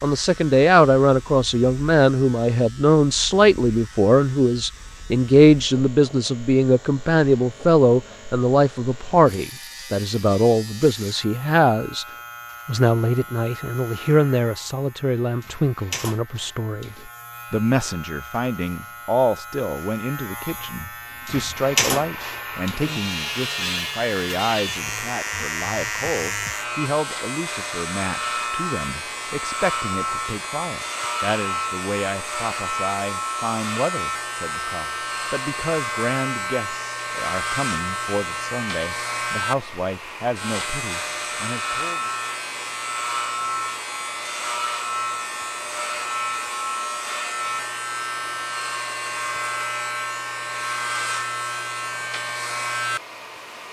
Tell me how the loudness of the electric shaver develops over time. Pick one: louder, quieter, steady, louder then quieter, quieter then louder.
louder.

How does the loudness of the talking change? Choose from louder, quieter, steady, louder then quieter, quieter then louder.
quieter.